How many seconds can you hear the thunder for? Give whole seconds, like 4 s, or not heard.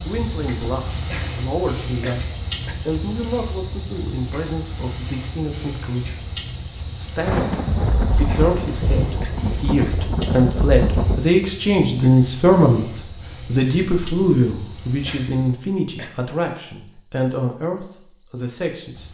4 s.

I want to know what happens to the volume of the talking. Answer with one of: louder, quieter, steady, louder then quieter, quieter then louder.
louder then quieter.